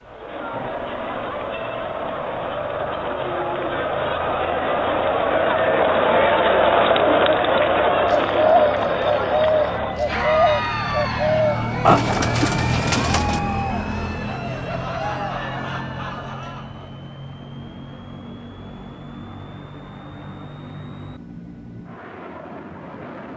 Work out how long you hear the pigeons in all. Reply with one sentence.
The pigeons can be heard for 5 seconds in total.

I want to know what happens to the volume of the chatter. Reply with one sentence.
The loudness of the chatter goes up, then down.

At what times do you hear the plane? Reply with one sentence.
The plane can be heard from 0.0 to 23.3 s.